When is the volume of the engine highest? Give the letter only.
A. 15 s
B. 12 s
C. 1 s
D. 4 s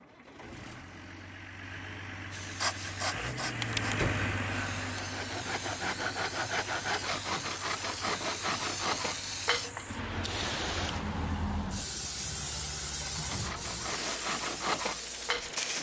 D.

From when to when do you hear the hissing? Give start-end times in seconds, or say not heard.
2.3-15.7.